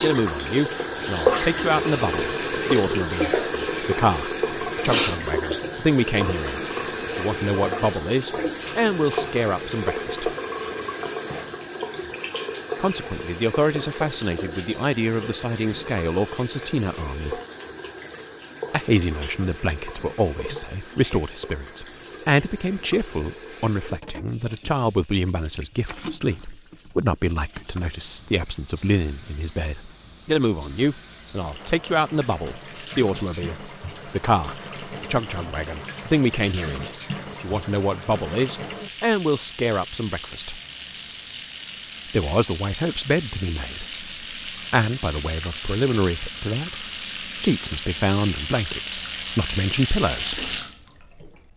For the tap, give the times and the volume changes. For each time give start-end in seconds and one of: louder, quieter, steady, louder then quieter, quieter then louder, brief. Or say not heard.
0.0-51.3 quieter then louder.